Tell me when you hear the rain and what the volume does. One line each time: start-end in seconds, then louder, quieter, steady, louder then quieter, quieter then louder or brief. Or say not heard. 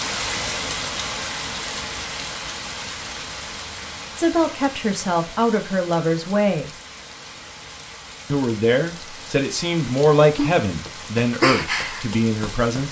0.0-12.8 quieter then louder.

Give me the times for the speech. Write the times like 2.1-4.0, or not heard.
4.2-6.7, 8.3-12.8.